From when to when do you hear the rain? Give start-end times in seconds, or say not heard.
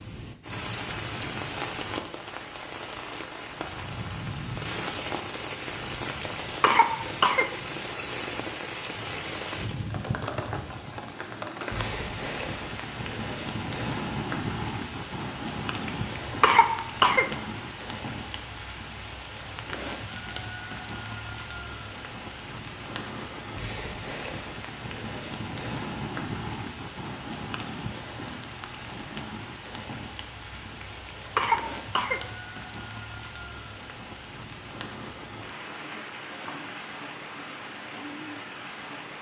0.0-39.1.